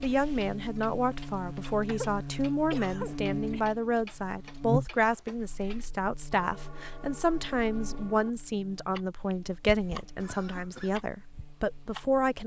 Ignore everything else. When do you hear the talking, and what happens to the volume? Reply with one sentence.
The talking can be heard from 0.0 to 12.4 s, at a steady volume.